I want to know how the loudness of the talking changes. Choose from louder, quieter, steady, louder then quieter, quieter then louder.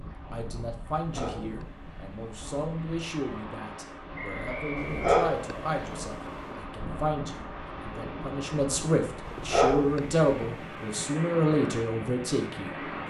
louder.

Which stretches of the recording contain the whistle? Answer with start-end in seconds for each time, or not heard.
4.2-5.1.